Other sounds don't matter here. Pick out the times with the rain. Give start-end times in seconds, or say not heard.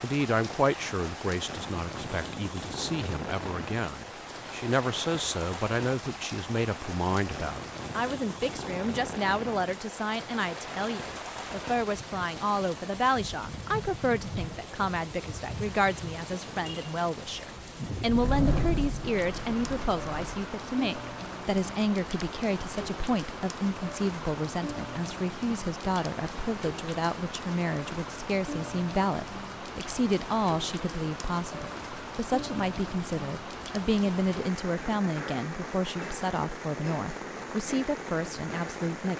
0.0-39.1.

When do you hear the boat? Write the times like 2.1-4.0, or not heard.
18.1-20.6.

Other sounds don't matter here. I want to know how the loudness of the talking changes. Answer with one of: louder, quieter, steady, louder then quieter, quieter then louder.
steady.